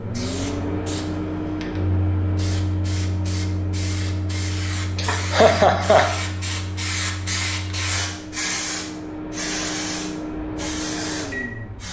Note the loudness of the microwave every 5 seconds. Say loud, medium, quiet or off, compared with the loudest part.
loud, medium, loud.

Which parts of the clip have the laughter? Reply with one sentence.
The laughter can be heard from 5.0 to 6.2 s.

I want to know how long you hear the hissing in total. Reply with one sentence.
The hissing can be heard for 12 seconds in total.